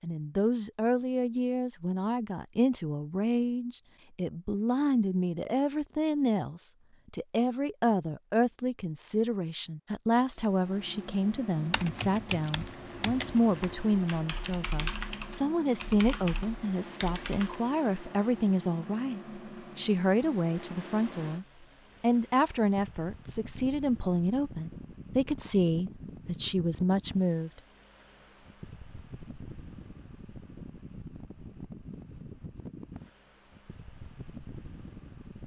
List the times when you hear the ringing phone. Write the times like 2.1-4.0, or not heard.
not heard.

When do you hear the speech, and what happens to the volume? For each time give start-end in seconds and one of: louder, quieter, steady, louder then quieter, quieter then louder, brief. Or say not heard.
0.0-27.5 steady.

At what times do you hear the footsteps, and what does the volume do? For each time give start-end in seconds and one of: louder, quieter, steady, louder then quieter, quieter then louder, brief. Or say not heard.
not heard.